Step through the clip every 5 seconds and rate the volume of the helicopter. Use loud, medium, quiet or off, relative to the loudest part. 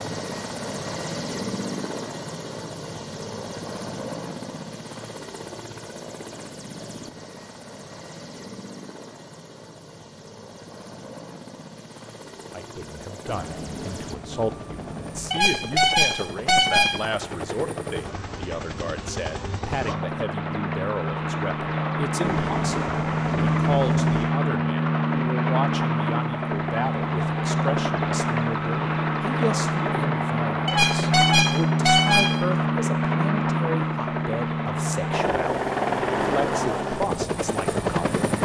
medium, quiet, quiet, medium, loud, loud, loud, loud.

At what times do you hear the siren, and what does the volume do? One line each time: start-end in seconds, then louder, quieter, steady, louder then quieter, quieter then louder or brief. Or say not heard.
not heard.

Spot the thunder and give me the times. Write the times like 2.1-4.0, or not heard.
13.2-15.3, 22.2-24.2.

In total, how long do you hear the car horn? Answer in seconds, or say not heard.
3 s.